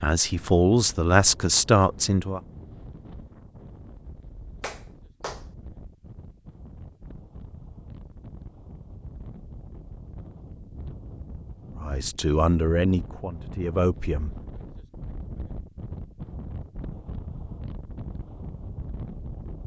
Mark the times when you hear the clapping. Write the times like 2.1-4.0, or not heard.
4.6-5.5.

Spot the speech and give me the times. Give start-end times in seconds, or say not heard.
0.0-2.4, 11.8-14.3.